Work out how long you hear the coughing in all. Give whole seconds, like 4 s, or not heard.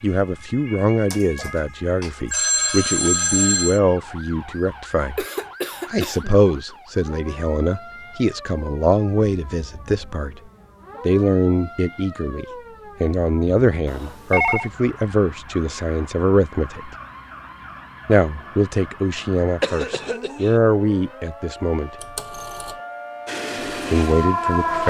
2 s.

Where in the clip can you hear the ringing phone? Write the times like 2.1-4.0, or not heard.
1.1-3.8, 13.8-14.7, 22.0-22.8.